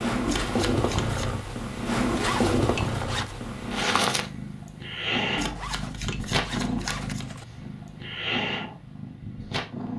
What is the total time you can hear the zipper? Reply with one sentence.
The zipper can be heard for 3 seconds in total.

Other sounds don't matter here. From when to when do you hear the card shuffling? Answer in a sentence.
You can hear the card shuffling from 0.2 to 1.4 s and from 5.3 to 7.3 s.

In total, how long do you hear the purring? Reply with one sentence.
You can hear the purring for 10 seconds altogether.